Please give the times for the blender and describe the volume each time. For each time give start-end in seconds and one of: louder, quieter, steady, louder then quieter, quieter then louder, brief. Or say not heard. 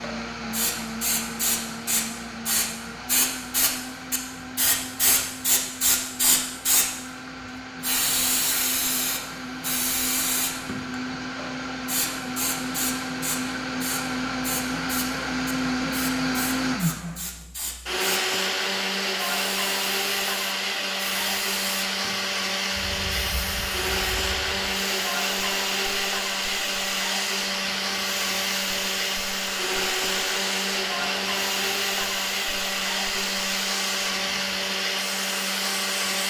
0.0-36.2 louder.